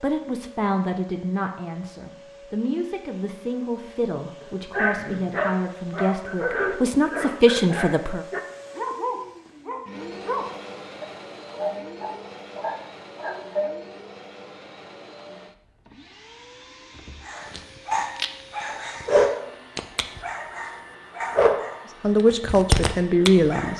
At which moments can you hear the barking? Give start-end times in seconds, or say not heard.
4.7-13.8, 17.2-23.7.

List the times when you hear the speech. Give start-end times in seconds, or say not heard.
0.0-8.2, 22.0-23.7.